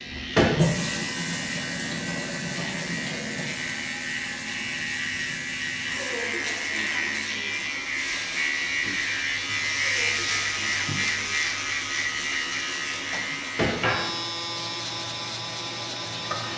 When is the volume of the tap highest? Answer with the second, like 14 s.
1 s.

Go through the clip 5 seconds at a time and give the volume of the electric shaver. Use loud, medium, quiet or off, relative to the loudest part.
medium, loud, loud, medium.